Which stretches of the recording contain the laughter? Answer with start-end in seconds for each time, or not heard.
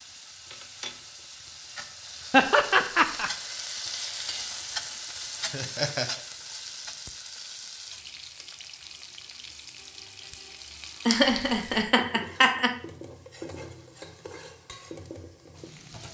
2.3-3.3, 5.5-6.2, 11.1-12.8.